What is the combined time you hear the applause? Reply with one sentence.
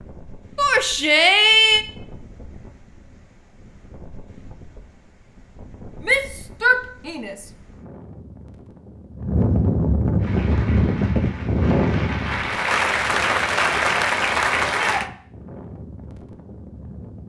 You can hear the applause for 5 seconds altogether.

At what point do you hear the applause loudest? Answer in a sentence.
The volume of the applause peaks at 14 seconds.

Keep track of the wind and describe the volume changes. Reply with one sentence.
The volume of the wind goes up, then down.